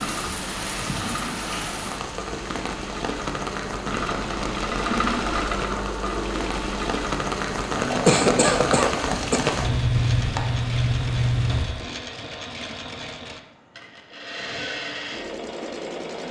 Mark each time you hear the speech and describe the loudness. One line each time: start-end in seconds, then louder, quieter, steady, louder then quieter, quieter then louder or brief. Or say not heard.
not heard.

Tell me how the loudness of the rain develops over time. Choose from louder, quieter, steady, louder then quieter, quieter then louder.
louder.